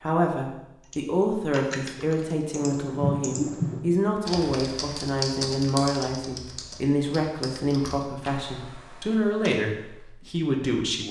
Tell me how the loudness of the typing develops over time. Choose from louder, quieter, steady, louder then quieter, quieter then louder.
louder then quieter.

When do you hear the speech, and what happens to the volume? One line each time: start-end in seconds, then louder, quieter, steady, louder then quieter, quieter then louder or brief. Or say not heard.
0.0-11.0 steady.